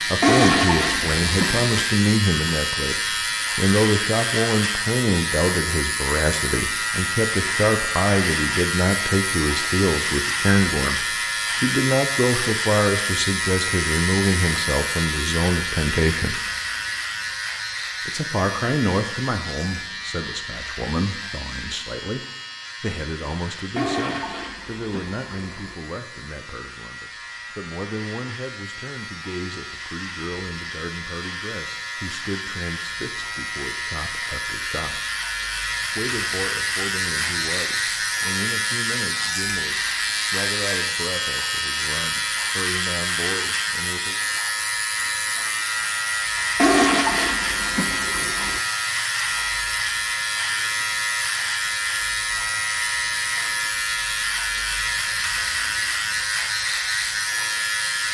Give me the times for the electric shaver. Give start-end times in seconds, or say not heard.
0.0-58.0.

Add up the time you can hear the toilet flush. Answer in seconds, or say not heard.
6 s.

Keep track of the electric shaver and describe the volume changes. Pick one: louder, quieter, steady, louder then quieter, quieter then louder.
quieter then louder.